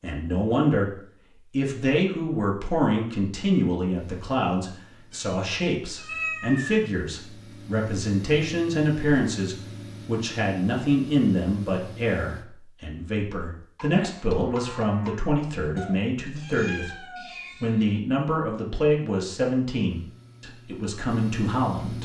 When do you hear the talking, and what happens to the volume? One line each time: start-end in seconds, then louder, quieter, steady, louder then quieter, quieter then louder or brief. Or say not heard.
0.0-22.0 steady.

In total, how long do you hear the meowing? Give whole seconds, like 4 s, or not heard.
4 s.